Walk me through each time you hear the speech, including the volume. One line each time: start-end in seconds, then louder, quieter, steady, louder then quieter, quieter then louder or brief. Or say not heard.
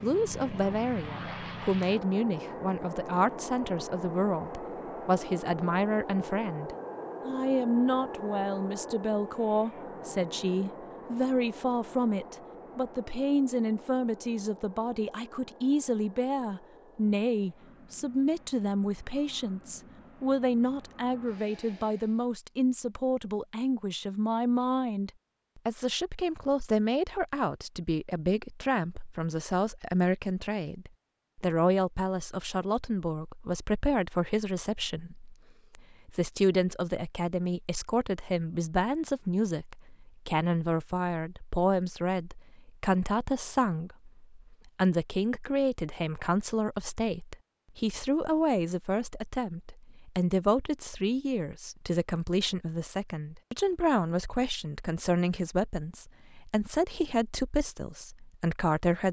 0.0-59.0 steady.